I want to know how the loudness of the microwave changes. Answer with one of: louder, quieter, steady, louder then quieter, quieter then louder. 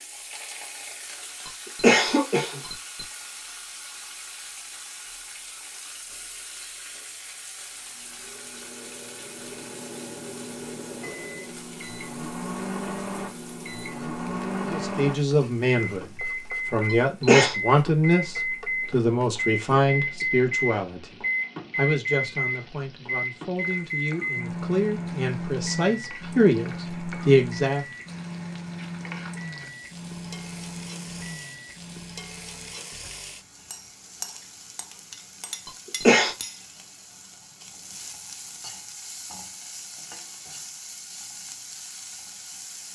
louder then quieter.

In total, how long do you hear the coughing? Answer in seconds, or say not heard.
3 s.